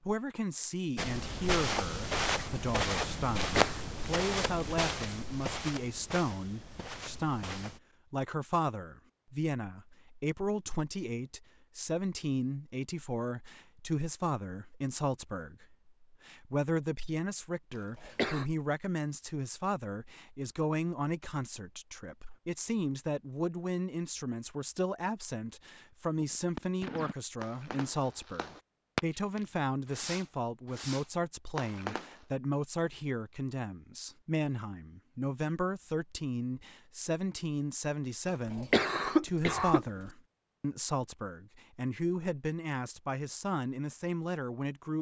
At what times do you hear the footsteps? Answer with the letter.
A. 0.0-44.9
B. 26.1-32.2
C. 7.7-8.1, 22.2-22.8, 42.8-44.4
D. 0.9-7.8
D.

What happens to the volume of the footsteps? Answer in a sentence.
The loudness of the footsteps goes down.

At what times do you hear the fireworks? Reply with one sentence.
The fireworks can be heard from 26.1 to 32.2 s.